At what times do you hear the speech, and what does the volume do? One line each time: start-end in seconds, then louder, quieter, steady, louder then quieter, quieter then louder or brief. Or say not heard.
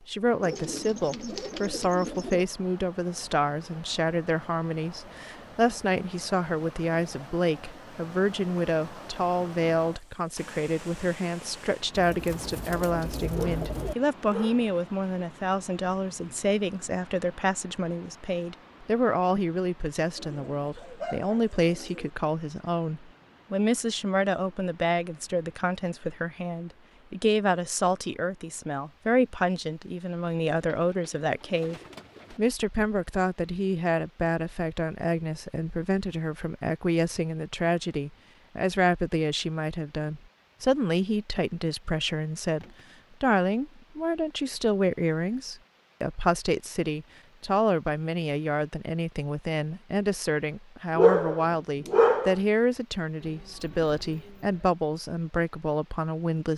0.1-56.5 steady.